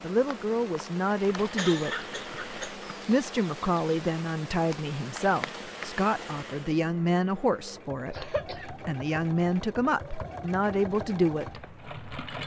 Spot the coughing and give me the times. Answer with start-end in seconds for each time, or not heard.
1.4-2.8, 8.1-8.7.